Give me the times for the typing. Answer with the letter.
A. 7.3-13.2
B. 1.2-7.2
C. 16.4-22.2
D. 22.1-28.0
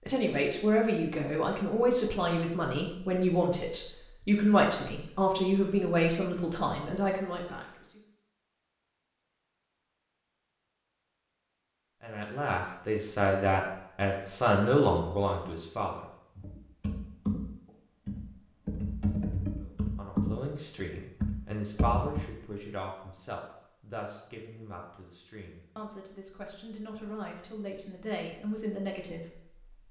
C.